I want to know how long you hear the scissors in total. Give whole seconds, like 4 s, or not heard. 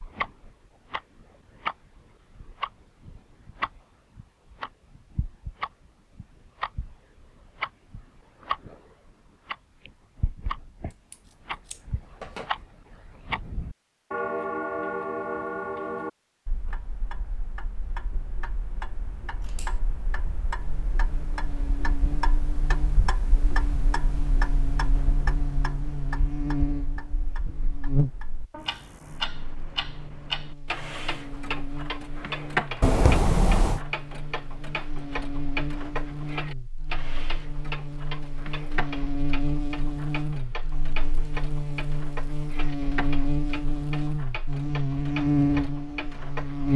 3 s.